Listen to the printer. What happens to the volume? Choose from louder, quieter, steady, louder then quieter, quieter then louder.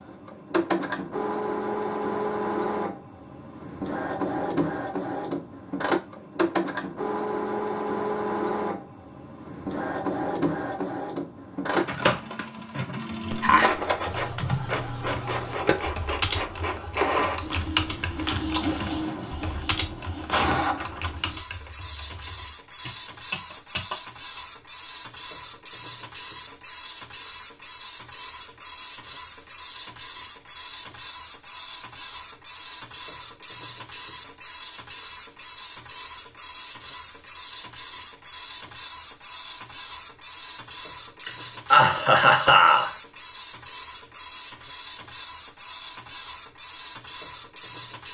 quieter.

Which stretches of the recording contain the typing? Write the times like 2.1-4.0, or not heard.
14.1-24.4.